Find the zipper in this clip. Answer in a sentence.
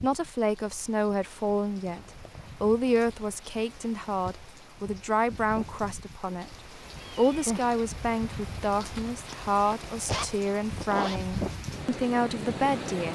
You can hear the zipper from 1.9 to 2.5 s and from 8.8 to 11.2 s.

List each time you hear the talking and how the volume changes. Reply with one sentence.
You can hear the talking from 0.0 to 13.0 s, at a steady volume.